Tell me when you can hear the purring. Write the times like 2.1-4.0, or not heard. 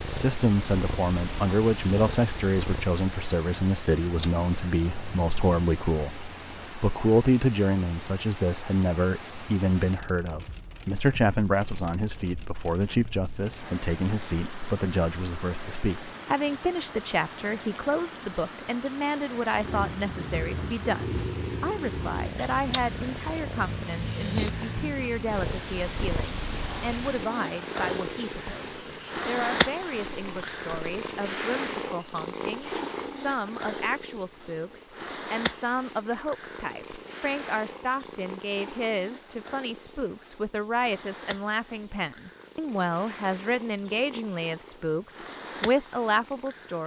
0.0-5.6, 19.5-46.8.